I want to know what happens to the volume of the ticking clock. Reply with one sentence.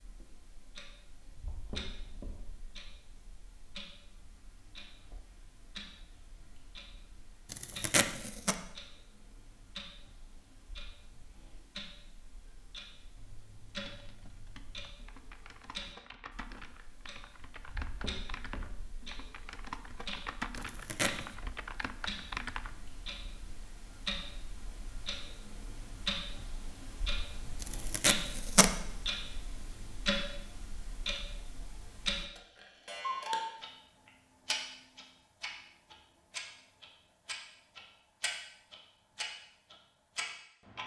The volume of the ticking clock goes up.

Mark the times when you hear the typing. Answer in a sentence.
The typing can be heard from 13.2 to 22.8 s.